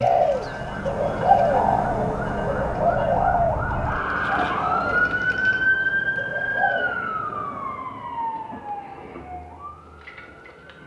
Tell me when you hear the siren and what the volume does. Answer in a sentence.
The siren can be heard from 0.0 to 10.8 s, getting louder then quieter.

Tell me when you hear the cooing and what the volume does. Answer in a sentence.
You can hear the cooing from 0.0 to 7.0 s, getting quieter.